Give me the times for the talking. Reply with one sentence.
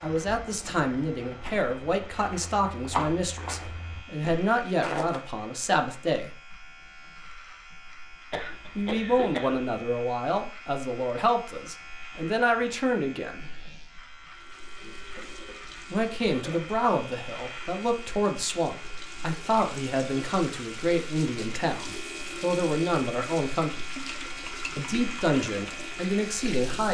The talking can be heard from 0.0 to 6.3 s, from 8.8 to 13.5 s, from 15.9 to 23.9 s and from 24.8 to 26.8 s.